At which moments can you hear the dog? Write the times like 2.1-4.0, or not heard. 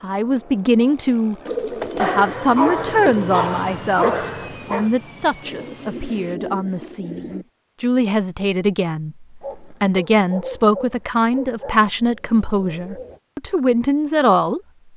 1.9-4.9, 9.4-11.8.